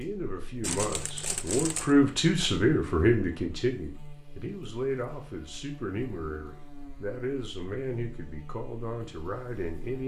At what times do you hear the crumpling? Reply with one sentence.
The crumpling can be heard from 0.6 to 1.9 s.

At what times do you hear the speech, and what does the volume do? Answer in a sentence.
The speech can be heard from 0.0 to 10.0 s, getting quieter.